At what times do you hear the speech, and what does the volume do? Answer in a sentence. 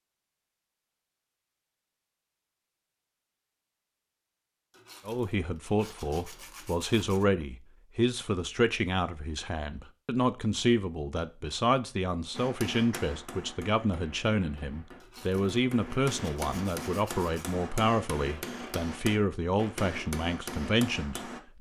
You can hear the speech from 5.0 to 21.5 s, at a steady volume.